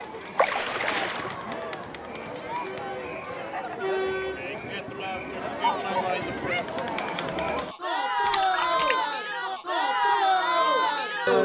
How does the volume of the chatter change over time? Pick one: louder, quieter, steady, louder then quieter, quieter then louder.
louder.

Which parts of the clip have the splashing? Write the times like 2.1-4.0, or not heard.
0.3-1.4, 8.2-8.9.